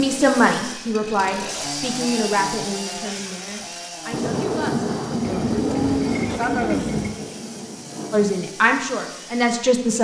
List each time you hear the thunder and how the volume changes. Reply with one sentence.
You can hear the thunder from 4.1 to 8.3 s, getting quieter.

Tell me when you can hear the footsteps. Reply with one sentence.
The footsteps can't be heard in this clip.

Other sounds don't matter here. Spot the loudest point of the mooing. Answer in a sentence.
The loudest moment of the mooing is at 7 seconds.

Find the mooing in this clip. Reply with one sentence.
You can hear the mooing from 5.2 to 7.1 s.